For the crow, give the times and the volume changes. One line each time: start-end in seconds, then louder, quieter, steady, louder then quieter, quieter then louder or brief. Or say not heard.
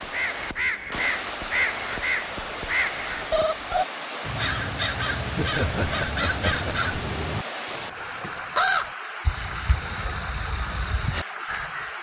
0.0-11.9 quieter.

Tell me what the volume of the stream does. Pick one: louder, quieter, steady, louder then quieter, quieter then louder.
steady.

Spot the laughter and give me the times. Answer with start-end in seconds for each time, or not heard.
5.3-6.9.